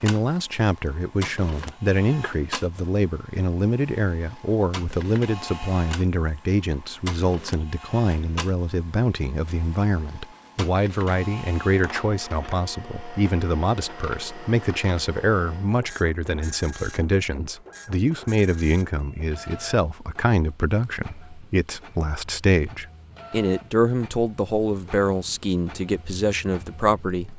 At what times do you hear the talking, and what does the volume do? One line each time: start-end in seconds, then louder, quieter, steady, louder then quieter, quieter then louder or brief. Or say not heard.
0.0-27.3 steady.